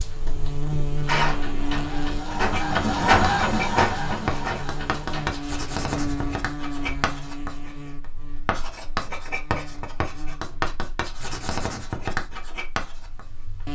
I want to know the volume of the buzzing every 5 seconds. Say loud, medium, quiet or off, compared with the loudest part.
loud, loud, medium.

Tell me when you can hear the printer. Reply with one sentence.
You can hear the printer from 0.0 to 5.5 s.